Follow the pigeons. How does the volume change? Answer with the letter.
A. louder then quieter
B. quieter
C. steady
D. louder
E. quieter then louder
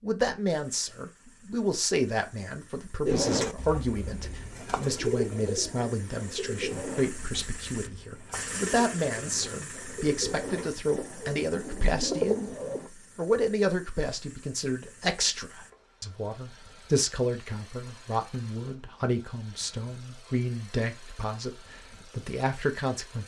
E.